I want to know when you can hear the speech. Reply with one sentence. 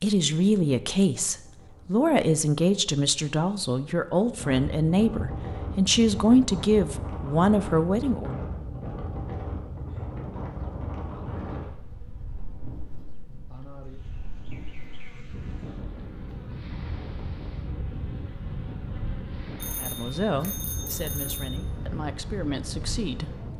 The speech can be heard from 0.0 to 8.3 s and from 19.8 to 23.5 s.